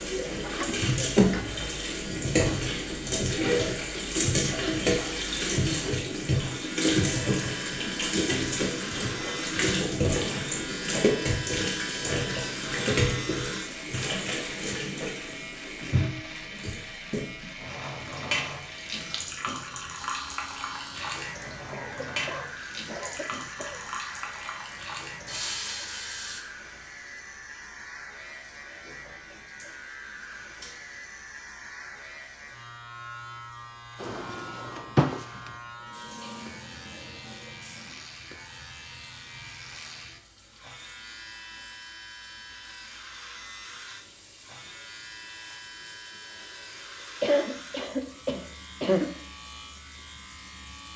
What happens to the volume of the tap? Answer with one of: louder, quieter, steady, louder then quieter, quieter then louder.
quieter.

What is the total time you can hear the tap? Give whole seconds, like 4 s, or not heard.
51 s.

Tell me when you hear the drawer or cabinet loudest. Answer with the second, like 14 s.
35 s.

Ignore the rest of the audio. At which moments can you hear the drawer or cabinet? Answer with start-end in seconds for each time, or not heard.
0.6-1.7, 34.0-35.5.